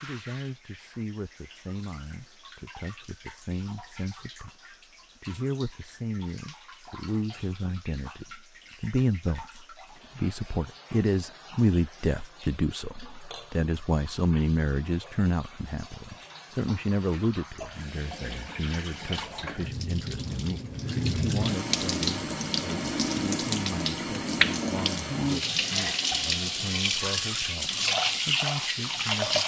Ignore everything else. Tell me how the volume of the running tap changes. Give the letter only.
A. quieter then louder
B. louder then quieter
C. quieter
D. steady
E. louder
E.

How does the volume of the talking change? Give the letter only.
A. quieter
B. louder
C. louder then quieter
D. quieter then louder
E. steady
C.